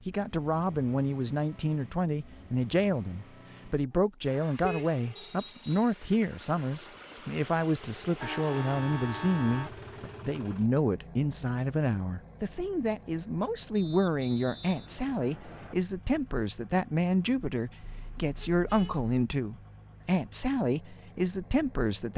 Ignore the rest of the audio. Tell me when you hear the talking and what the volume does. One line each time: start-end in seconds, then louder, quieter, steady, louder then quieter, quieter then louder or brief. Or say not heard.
0.1-22.1 steady.